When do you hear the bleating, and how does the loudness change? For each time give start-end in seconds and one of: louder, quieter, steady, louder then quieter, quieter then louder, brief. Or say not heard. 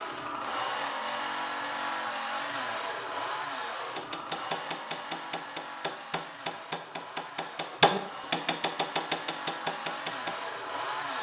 not heard.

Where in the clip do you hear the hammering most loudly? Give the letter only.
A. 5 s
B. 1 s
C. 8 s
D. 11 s
C.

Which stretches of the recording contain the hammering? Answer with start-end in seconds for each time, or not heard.
4.0-10.3.